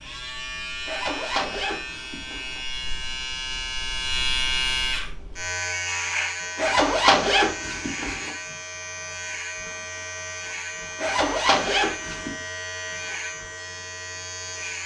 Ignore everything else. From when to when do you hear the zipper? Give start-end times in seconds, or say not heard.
0.8-2.6, 6.5-8.3, 10.9-12.3.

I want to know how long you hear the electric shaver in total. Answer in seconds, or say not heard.
15 s.